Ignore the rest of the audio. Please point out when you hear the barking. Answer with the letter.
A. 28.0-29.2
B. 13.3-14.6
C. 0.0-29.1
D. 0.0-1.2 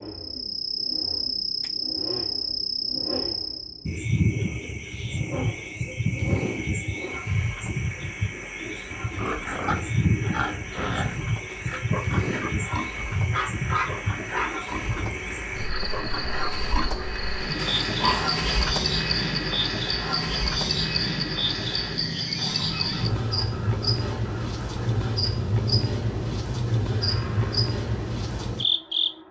B.